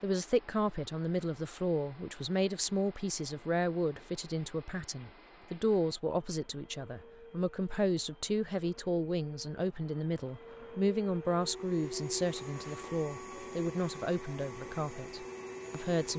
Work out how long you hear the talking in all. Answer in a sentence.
You can hear the talking for 16 seconds altogether.